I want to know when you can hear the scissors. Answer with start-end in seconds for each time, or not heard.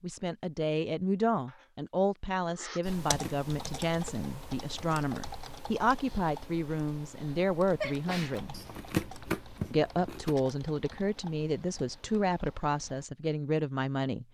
3.0-3.5, 8.5-10.3.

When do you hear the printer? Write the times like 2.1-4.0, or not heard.
not heard.